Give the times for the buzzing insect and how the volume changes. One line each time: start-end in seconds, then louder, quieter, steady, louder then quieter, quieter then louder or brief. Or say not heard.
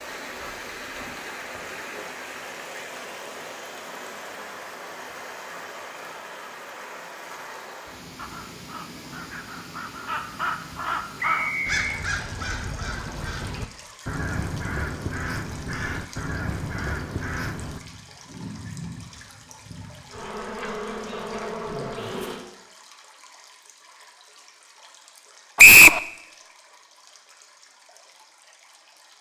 17.8-22.4 quieter then louder.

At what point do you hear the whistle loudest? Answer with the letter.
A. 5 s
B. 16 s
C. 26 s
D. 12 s
C.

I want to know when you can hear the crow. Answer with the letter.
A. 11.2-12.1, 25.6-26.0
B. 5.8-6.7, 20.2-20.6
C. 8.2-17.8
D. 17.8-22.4
C.